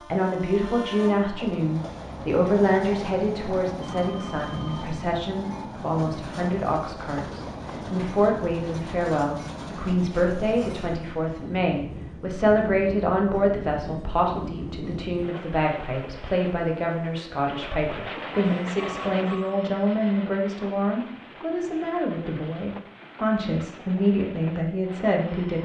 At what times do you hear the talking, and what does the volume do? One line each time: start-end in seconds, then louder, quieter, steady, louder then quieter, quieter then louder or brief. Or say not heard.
0.0-25.6 steady.